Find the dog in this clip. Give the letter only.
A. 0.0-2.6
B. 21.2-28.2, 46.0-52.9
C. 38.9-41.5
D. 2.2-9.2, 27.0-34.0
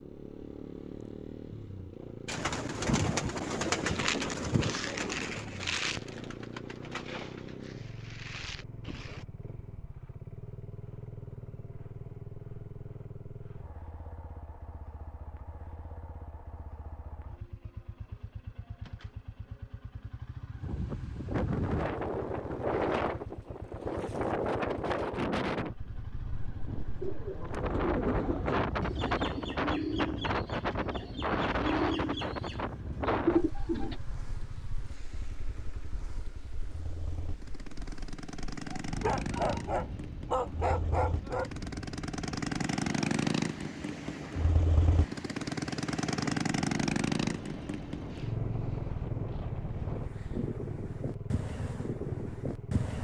C.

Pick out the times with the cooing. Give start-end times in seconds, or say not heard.
2.2-9.2, 27.0-34.0.